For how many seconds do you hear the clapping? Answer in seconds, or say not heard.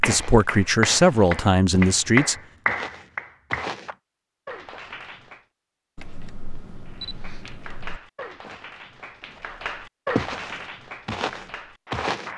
11 s.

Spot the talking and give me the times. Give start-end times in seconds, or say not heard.
0.0-2.4.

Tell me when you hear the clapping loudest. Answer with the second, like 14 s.
2 s.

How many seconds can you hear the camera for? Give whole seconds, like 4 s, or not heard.
2 s.